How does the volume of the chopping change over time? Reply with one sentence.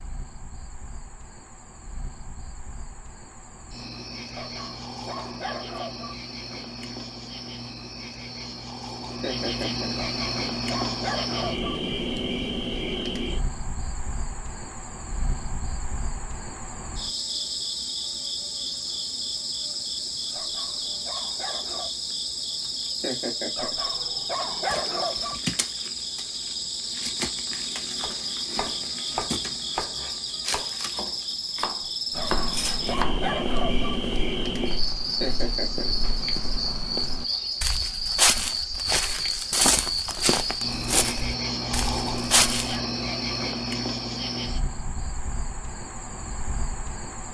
The volume of the chopping goes down, then up.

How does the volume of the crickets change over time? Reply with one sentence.
The loudness of the crickets goes up.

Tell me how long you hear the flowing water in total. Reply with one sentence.
The flowing water can't be heard in this clip.